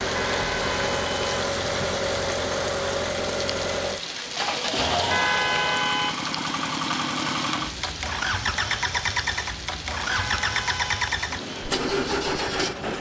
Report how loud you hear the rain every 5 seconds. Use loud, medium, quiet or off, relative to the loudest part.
loud, loud, medium.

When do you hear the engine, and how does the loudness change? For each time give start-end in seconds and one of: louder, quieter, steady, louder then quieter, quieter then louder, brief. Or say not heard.
0.0-12.9 steady.